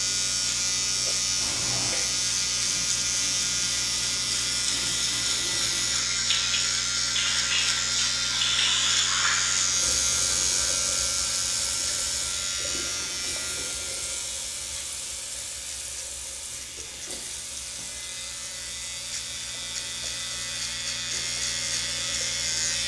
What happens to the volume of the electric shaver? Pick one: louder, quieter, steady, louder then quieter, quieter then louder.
quieter then louder.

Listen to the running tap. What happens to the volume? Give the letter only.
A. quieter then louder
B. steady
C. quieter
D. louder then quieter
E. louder
D.